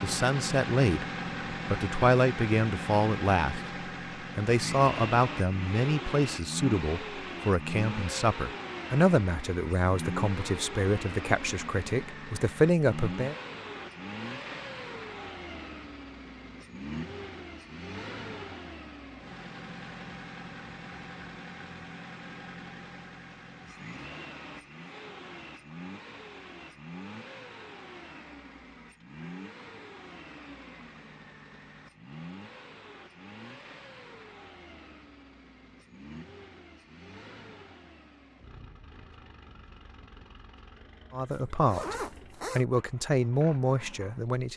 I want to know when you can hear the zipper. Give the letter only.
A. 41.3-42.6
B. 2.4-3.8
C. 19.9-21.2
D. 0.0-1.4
A.